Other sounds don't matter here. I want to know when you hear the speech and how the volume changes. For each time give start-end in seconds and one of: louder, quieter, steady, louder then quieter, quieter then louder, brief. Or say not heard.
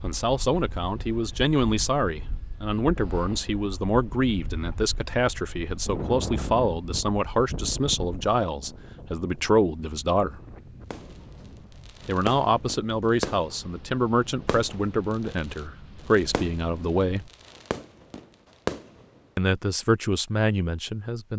0.0-10.4 steady
12.1-17.3 quieter then louder
19.4-21.3 brief.